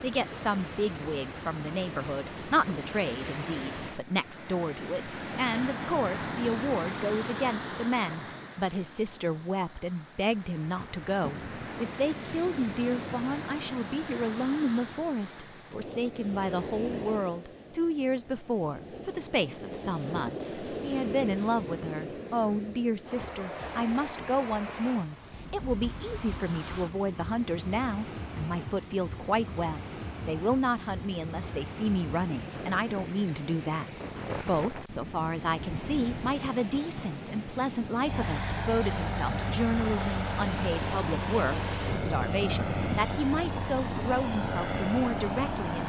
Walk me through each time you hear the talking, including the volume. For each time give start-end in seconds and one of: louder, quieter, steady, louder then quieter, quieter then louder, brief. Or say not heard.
0.0-45.8 steady.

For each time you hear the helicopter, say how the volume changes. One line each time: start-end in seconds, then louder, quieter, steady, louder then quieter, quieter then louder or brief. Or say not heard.
38.0-45.8 steady.